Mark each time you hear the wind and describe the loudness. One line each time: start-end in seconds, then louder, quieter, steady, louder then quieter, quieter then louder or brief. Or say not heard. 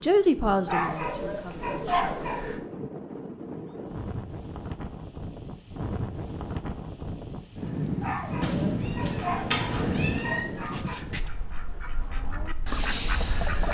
0.0-13.6 louder then quieter.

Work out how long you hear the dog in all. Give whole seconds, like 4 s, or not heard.
5 s.